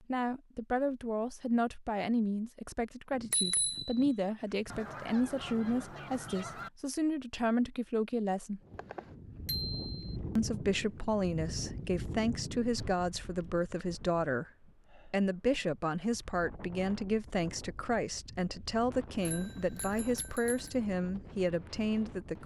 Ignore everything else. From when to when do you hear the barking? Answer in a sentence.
You can't hear the barking here.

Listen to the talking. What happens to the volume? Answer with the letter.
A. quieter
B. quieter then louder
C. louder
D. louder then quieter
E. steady
E.